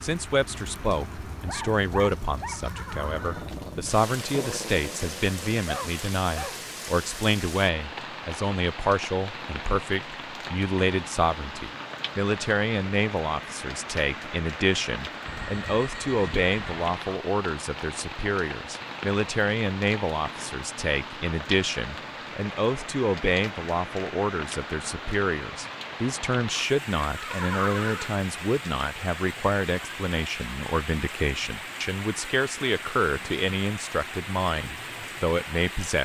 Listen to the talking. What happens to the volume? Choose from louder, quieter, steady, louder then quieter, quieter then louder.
steady.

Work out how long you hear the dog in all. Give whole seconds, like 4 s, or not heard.
5 s.